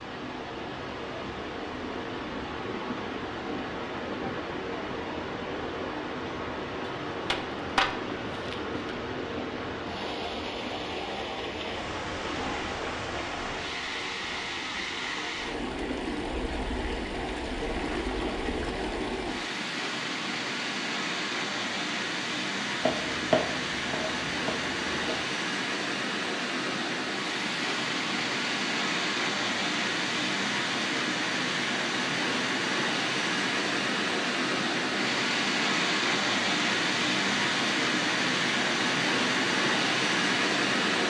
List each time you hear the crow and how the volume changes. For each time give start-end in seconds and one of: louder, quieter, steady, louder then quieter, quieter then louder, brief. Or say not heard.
not heard.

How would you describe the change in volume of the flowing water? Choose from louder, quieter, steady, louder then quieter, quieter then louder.
louder.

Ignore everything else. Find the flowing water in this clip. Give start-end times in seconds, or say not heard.
0.0-41.0.